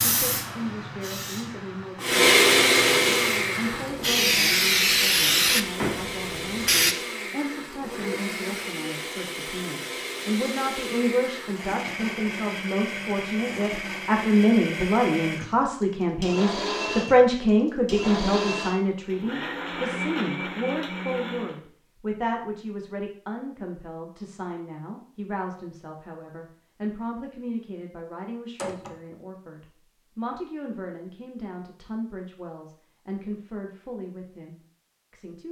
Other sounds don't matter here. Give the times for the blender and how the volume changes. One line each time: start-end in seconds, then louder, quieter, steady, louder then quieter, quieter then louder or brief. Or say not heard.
2.0-21.6 quieter.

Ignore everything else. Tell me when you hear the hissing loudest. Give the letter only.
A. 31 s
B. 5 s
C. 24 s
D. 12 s
B.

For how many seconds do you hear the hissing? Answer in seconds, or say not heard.
7 s.